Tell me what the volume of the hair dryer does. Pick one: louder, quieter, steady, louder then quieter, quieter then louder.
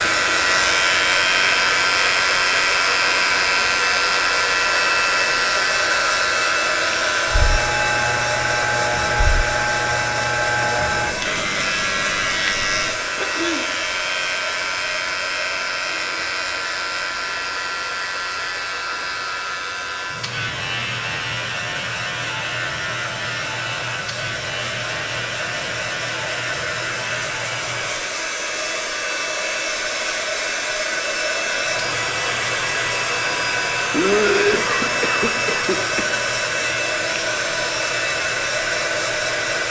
quieter then louder.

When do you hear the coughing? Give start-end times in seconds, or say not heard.
13.2-13.7, 33.9-36.1.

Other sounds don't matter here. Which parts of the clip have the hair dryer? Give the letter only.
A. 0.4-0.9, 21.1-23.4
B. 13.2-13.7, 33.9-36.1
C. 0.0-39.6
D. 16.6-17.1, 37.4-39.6
C.